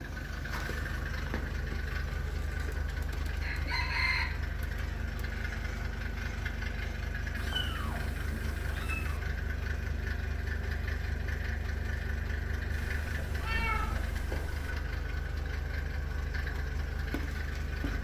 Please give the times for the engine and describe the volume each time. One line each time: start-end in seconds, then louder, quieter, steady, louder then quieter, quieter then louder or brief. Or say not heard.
0.0-17.9 steady.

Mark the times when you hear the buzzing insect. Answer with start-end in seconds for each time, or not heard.
not heard.